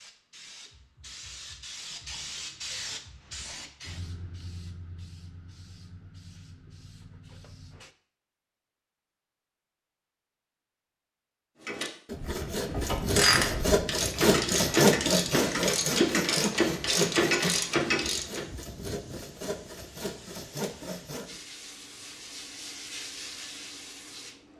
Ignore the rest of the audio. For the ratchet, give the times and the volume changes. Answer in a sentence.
The ratchet can be heard from 11.7 to 18.4 s, getting louder.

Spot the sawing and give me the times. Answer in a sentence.
You can hear the sawing from 12.1 to 21.4 s.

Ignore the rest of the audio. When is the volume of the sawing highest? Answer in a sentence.
The volume of the sawing peaks at 15 seconds.